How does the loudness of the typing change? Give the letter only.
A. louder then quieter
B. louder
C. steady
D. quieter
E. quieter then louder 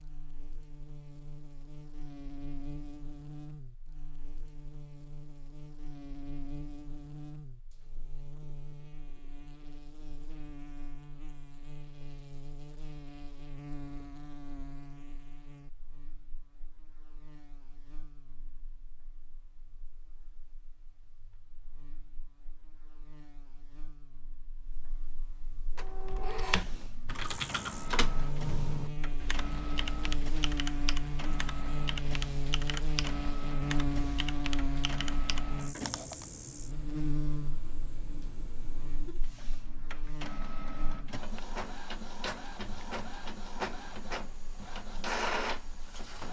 D.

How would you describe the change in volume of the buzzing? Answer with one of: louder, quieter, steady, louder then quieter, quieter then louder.
quieter then louder.